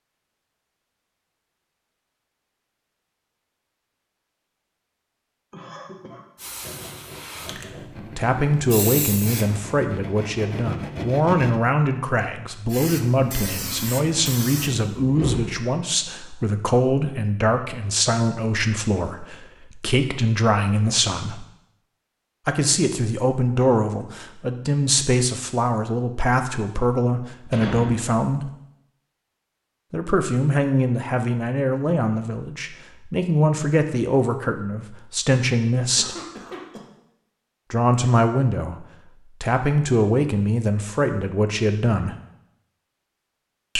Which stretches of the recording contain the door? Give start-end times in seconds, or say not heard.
14.7-15.6, 27.5-28.2.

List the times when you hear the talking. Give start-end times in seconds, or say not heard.
8.2-21.4, 22.4-28.5, 29.9-36.1, 37.7-42.1.